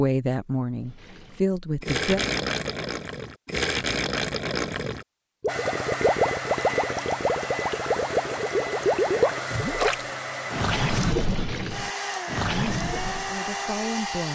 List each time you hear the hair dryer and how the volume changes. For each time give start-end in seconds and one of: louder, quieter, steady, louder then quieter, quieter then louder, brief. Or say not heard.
5.5-14.3 steady.